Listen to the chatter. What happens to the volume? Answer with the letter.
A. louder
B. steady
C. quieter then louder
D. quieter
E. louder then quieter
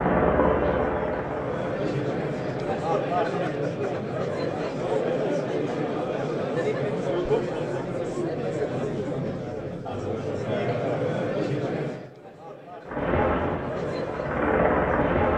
D.